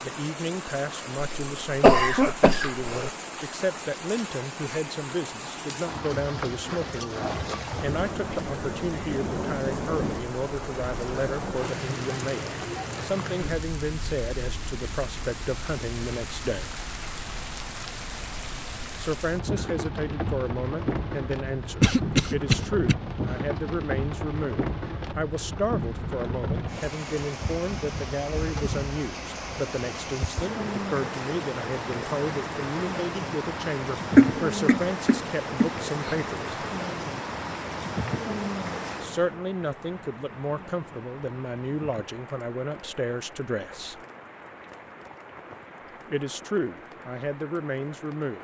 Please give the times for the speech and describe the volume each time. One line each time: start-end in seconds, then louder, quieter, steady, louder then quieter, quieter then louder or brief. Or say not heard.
0.0-16.8 steady
18.9-36.5 steady
39.0-44.0 steady
46.0-48.3 brief.